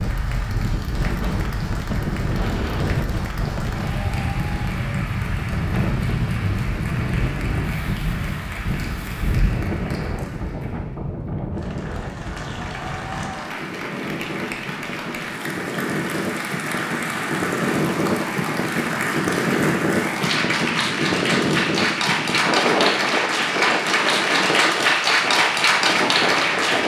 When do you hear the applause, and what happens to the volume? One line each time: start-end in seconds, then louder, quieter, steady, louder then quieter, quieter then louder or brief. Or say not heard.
0.0-26.8 louder.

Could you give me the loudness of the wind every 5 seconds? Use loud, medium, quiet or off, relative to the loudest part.
loud, loud, medium, loud, loud, loud.